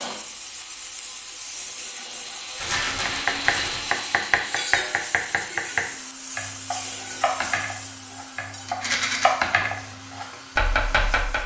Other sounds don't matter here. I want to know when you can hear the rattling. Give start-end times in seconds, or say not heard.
2.5-3.9, 8.7-9.2.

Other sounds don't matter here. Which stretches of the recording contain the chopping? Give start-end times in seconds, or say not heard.
3.0-11.4.